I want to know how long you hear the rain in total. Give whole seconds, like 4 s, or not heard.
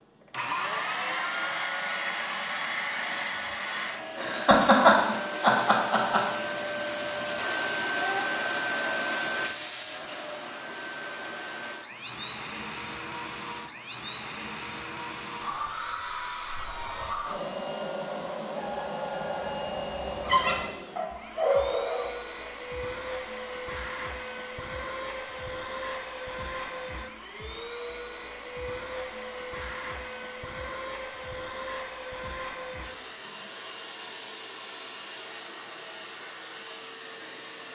not heard.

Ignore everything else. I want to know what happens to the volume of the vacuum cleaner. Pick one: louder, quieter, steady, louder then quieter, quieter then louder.
quieter.